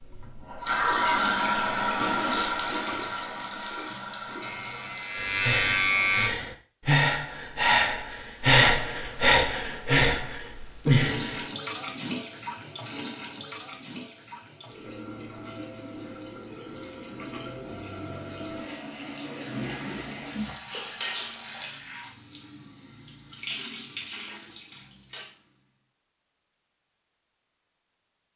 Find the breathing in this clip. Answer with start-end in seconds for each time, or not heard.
5.2-11.4.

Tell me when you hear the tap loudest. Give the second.
1 s.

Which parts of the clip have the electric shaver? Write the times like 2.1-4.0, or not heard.
4.4-6.3.